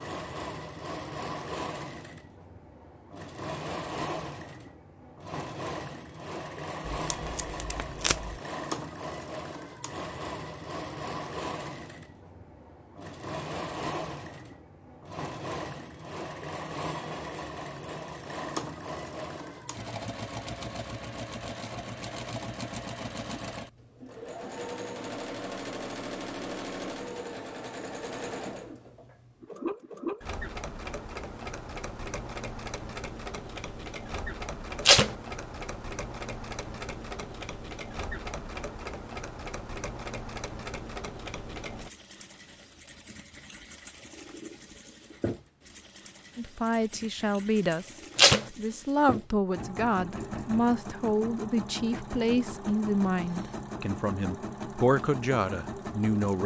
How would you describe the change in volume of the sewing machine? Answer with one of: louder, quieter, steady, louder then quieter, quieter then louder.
steady.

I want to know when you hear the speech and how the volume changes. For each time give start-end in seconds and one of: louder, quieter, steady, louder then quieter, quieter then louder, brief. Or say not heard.
46.4-56.4 steady.